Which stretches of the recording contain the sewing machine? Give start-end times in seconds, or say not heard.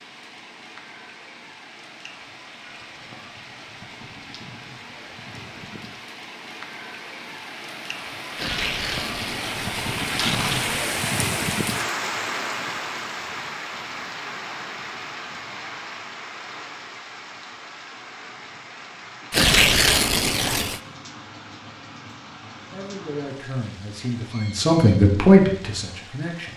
not heard.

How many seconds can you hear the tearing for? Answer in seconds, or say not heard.
4 s.